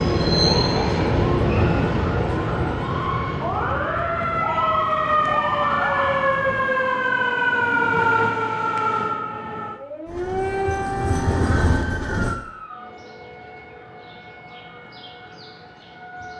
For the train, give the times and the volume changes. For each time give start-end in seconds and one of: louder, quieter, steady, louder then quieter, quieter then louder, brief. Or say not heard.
0.0-6.7 quieter
10.1-12.3 brief.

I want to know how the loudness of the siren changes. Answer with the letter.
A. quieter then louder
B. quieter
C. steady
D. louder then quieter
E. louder
D.